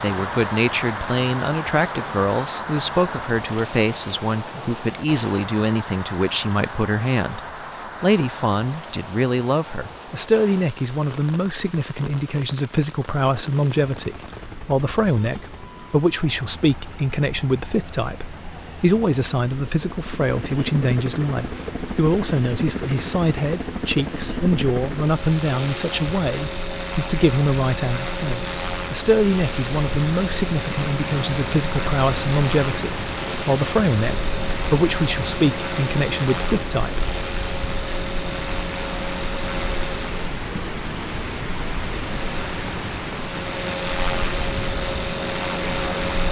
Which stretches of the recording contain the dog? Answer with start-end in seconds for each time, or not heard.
not heard.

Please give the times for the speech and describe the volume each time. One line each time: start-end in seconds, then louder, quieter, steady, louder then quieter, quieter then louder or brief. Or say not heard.
0.0-7.4 steady
8.0-37.1 steady.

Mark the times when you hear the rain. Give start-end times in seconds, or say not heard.
0.0-46.2.